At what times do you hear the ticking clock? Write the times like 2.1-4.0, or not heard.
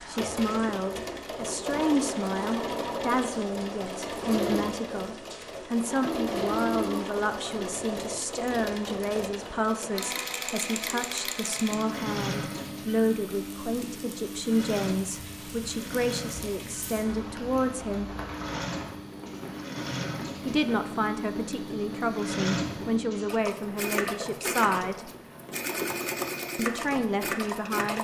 not heard.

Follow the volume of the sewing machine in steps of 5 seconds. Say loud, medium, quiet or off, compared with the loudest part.
loud, loud, loud, medium, loud, loud.